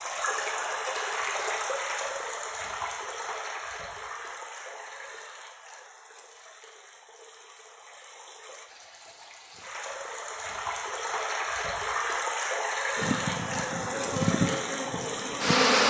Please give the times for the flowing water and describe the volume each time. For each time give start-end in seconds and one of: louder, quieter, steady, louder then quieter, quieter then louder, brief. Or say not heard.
0.0-15.6 quieter then louder.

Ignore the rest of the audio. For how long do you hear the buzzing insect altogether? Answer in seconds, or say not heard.
3 s.